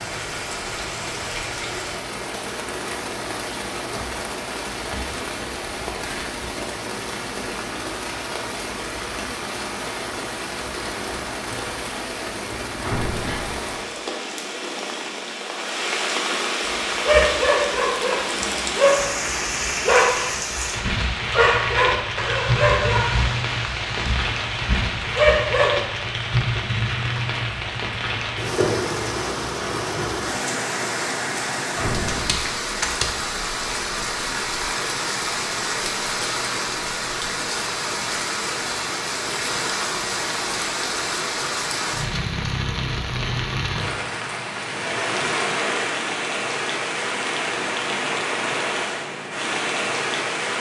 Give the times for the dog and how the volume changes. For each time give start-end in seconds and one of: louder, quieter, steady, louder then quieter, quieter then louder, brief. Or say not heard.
16.9-25.9 steady.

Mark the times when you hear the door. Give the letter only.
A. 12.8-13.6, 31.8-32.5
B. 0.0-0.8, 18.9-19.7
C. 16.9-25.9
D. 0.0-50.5
A.